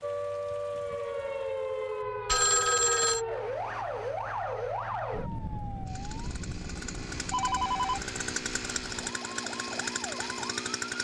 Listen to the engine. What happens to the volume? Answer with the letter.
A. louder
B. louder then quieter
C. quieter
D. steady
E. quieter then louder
A.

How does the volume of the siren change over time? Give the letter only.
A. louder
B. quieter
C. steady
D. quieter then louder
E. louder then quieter
B.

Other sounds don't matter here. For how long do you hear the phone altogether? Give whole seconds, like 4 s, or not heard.
2 s.